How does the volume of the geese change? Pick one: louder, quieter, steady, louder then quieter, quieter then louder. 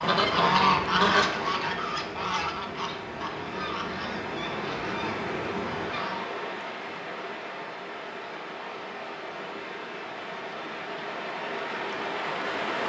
quieter.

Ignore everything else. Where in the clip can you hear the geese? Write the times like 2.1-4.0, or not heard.
0.0-6.2.